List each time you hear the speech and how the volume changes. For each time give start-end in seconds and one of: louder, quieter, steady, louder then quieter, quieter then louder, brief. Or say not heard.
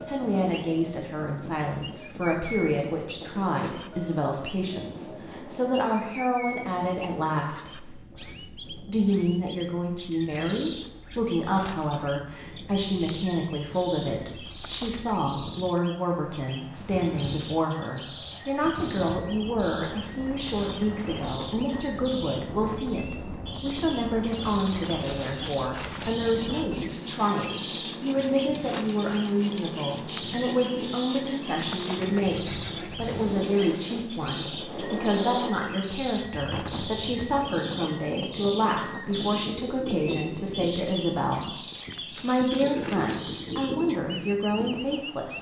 0.1-45.3 steady.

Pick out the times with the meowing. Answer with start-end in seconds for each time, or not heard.
not heard.